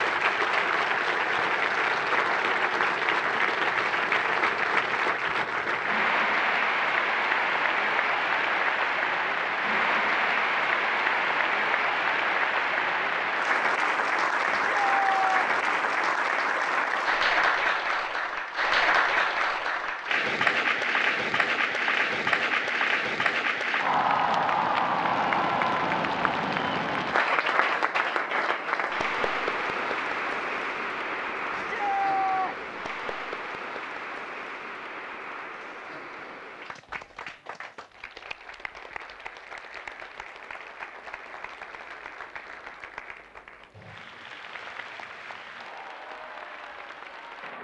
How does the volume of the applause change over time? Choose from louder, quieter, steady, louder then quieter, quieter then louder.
quieter.